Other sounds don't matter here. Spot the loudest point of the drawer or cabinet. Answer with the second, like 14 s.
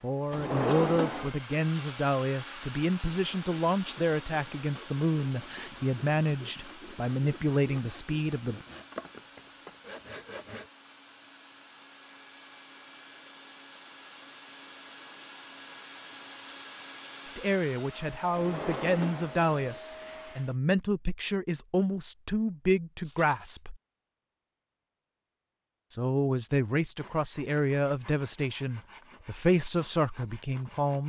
1 s.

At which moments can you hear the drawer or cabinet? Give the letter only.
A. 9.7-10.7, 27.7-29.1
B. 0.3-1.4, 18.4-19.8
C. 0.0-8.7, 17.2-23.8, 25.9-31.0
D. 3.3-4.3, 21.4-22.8
B.